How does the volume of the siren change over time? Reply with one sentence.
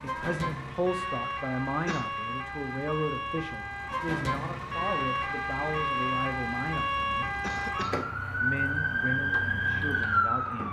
The volume of the siren goes up.